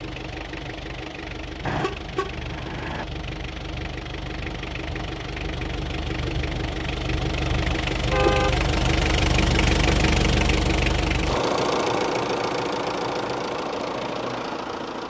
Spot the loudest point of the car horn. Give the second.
8 s.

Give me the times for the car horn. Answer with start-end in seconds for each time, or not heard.
1.6-3.0, 7.9-8.6.